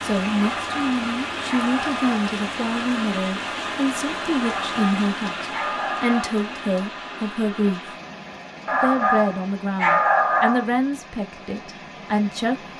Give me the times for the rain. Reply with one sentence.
The rain can be heard from 0.0 to 12.7 s.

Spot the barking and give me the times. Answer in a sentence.
The barking can be heard from 0.3 to 2.3 s, from 4.4 to 6.4 s and from 8.7 to 10.7 s.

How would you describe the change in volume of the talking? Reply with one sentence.
The volume of the talking stays about the same.